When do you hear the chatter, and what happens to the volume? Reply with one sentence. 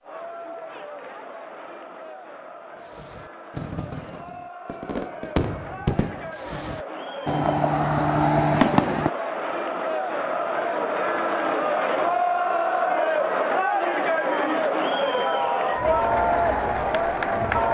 You can hear the chatter from 0.0 to 17.6 s, getting louder.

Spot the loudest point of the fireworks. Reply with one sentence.
The loudest moment of the fireworks is at 9 seconds.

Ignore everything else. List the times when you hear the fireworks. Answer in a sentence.
You can hear the fireworks from 2.8 to 9.1 s.